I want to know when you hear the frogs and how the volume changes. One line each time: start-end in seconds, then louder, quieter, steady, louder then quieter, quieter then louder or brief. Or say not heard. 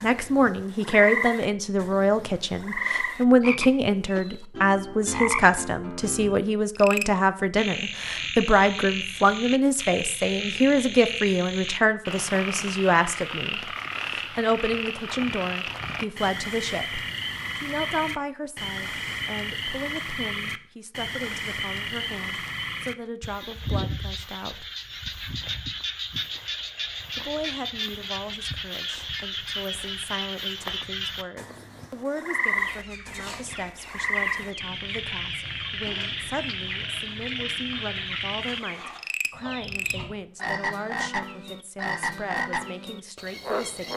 0.0-43.9 steady.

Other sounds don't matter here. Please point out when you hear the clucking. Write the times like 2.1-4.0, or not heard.
32.5-40.1.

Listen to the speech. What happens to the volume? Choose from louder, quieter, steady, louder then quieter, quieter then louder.
quieter.